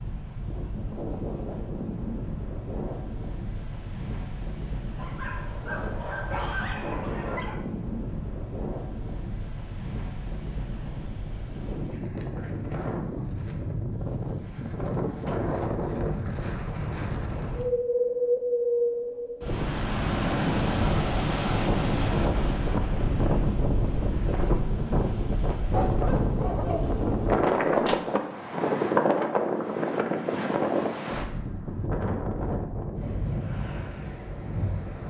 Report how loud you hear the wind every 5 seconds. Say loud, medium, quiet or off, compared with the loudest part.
medium, medium, medium, loud, loud, loud, medium.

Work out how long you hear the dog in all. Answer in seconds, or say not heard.
5 s.